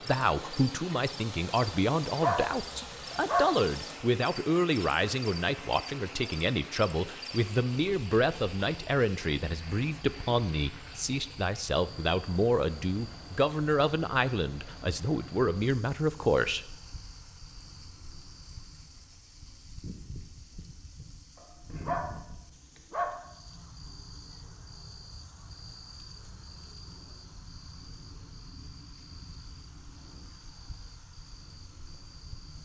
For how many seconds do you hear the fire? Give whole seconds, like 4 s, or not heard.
not heard.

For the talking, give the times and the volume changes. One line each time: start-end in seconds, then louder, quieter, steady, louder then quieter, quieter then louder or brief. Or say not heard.
0.1-16.6 steady.